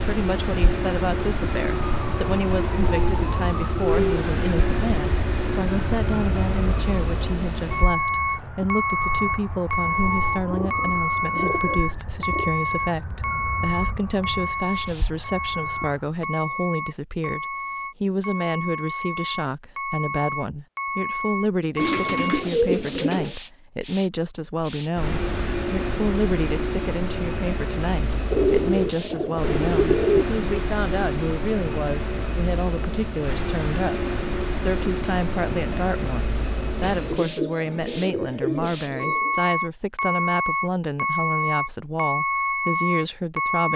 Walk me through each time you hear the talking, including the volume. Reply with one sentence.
The talking can be heard from 0.1 to 43.7 s, at a steady volume.